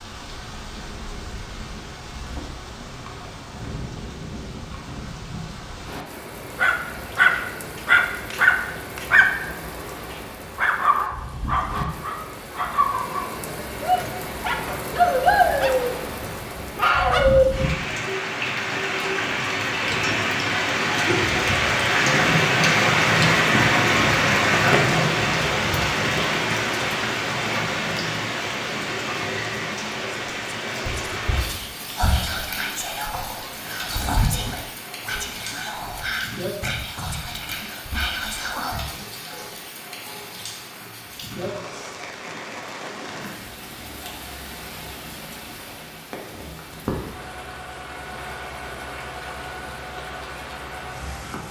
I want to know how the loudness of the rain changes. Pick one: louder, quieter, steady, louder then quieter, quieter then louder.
louder then quieter.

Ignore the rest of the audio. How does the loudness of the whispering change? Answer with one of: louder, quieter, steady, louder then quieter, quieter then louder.
steady.